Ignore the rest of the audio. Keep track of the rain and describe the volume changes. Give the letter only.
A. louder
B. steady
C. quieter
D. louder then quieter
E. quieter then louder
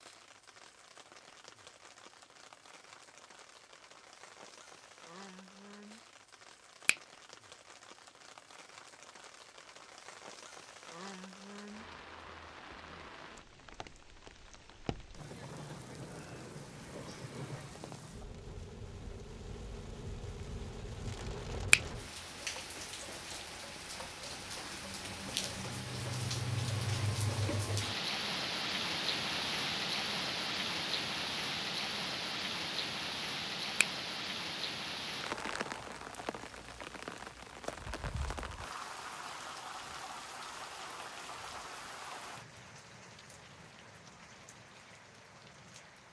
D.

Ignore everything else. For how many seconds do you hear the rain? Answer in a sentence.
You can hear the rain for 46 seconds altogether.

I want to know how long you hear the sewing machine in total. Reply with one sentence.
You can't hear the sewing machine here.